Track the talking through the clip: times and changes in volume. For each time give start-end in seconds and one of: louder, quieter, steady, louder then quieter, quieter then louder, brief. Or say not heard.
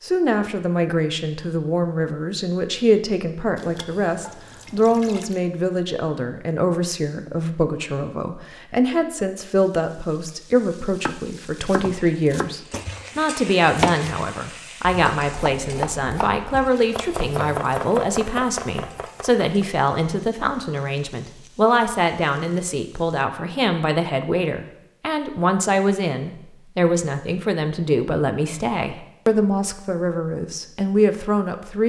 0.0-31.8 steady.